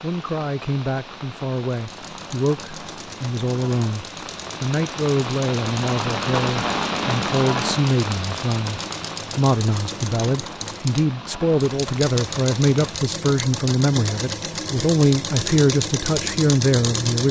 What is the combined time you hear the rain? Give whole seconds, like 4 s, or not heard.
13 s.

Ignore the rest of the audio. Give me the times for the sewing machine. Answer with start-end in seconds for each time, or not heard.
1.7-17.2.